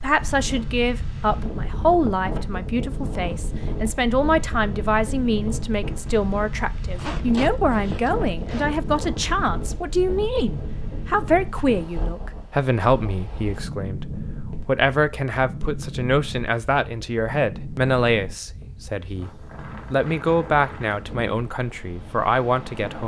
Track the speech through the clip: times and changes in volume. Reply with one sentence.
The speech can be heard from 0.0 to 23.0 s, at a steady volume.